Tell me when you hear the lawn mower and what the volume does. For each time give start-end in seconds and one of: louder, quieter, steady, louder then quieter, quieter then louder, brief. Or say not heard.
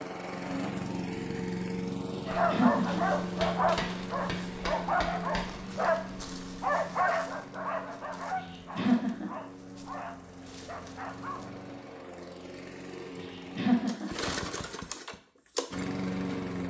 0.0-16.6 quieter then louder.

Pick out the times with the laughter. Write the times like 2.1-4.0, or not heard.
2.5-3.0, 8.8-9.3, 13.6-14.1.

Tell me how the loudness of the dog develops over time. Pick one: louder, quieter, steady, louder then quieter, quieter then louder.
quieter.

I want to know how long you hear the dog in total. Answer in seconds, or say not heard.
9 s.